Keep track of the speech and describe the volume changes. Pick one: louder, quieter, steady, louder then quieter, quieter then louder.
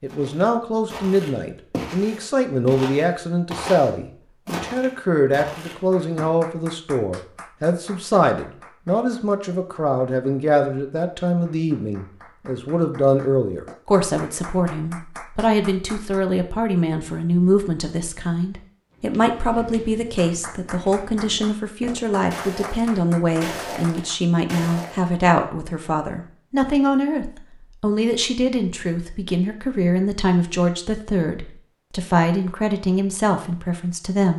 steady.